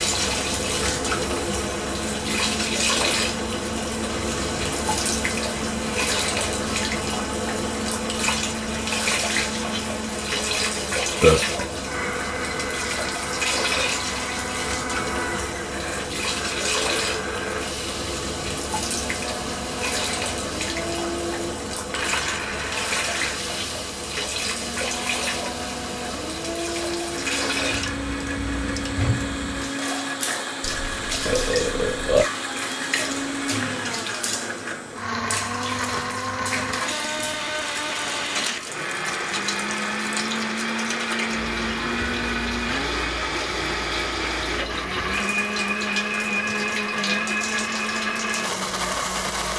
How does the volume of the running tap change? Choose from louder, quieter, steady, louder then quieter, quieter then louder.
quieter.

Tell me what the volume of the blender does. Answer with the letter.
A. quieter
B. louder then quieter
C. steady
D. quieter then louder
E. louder
E.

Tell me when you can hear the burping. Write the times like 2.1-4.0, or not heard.
11.2-11.6, 30.6-32.2.